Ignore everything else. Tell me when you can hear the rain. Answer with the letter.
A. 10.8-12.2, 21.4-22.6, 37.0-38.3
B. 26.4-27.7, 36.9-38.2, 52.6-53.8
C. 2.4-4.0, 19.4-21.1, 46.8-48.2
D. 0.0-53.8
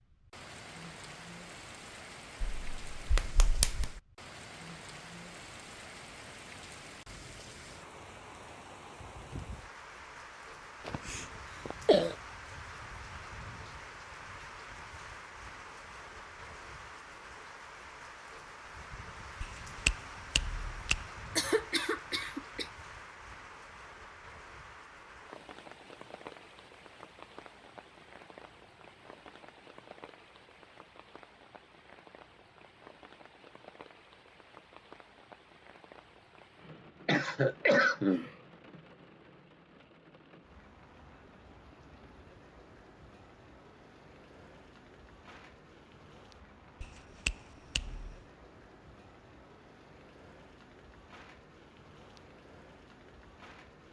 D.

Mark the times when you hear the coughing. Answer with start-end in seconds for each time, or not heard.
10.8-12.2, 21.4-22.6, 37.0-38.3.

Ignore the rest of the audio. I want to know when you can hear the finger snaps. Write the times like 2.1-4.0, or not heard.
2.4-4.0, 19.4-21.1, 46.8-48.2.